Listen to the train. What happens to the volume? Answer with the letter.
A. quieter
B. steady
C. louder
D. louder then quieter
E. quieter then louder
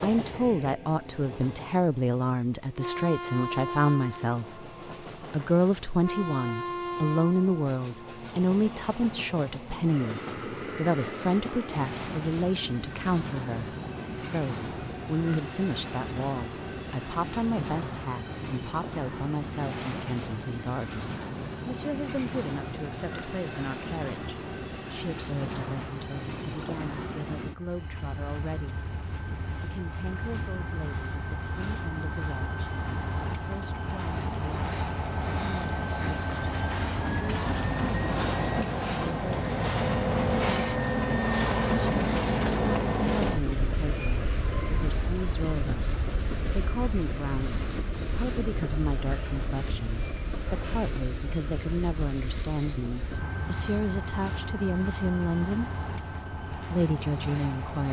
D.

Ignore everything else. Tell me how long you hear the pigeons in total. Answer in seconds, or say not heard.
not heard.